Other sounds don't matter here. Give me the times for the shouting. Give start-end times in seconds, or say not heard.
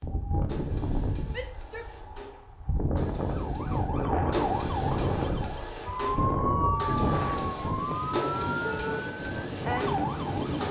1.3-1.9, 8.6-9.1.